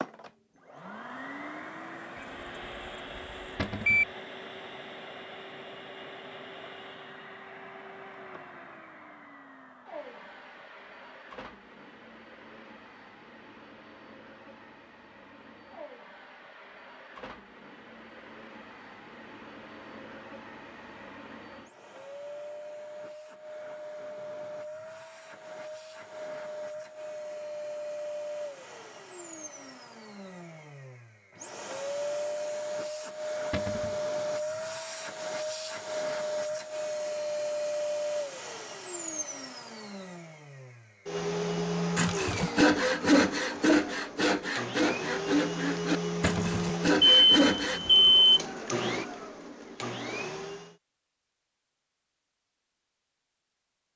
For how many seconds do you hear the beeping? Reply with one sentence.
The beeping can be heard for 2 seconds in total.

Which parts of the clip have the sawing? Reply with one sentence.
You can hear the sawing from 42.0 to 47.8 s.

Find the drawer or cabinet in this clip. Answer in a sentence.
The drawer or cabinet can be heard from 3.5 to 4.0 s, from 33.5 to 34.0 s and from 46.2 to 46.7 s.